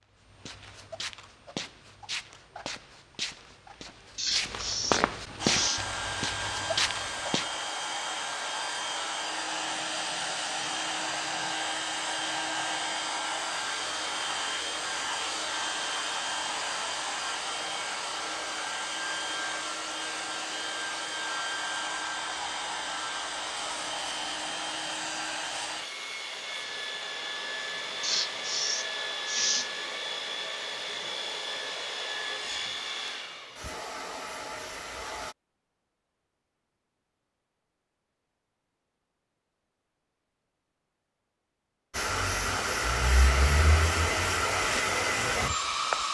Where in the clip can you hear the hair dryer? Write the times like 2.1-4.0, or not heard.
5.3-35.4, 41.9-46.0.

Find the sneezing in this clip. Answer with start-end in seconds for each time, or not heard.
4.2-5.8, 28.0-29.7.